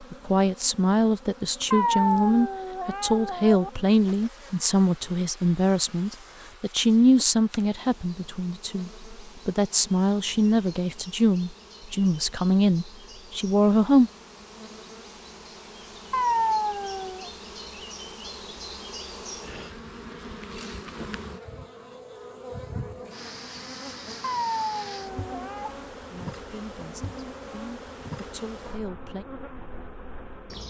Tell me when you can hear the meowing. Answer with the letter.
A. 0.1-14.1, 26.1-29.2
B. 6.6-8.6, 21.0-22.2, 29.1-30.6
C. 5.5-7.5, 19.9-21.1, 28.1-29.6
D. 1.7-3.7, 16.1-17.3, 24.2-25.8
D.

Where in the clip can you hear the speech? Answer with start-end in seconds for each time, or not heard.
0.1-14.1, 26.1-29.2.